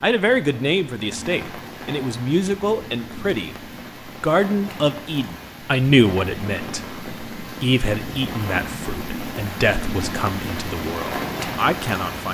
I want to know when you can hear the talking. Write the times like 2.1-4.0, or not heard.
0.0-12.2.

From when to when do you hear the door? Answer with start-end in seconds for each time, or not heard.
not heard.